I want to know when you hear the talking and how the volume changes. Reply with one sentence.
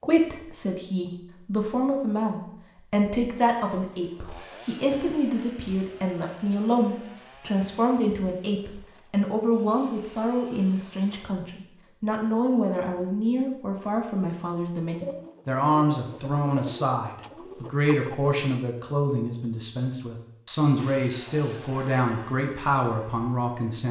The talking can be heard from 0.0 to 23.8 s, at a steady volume.